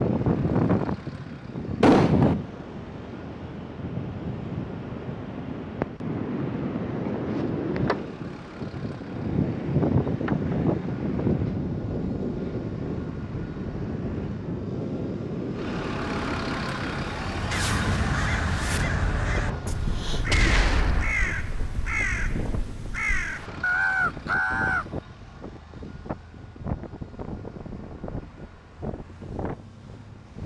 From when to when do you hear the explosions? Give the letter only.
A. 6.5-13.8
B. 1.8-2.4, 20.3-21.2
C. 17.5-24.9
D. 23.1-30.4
B.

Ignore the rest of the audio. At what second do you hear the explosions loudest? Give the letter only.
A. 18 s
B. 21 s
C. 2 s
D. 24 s
C.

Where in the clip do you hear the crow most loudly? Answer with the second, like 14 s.
24 s.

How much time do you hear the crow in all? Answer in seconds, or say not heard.
7 s.